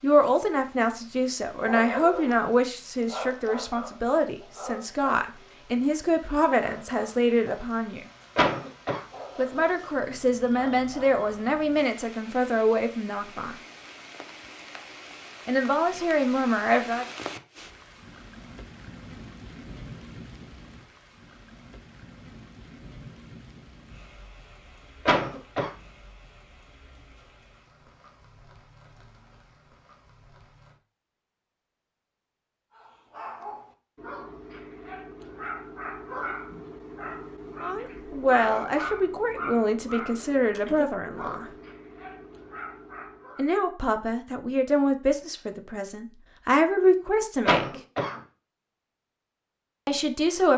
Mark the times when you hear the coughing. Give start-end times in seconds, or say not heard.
8.3-9.0, 25.1-25.7, 47.5-48.2.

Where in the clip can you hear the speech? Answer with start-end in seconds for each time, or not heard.
0.0-8.1, 9.3-13.6, 15.4-17.1, 37.6-41.5, 43.4-47.6, 49.9-50.5.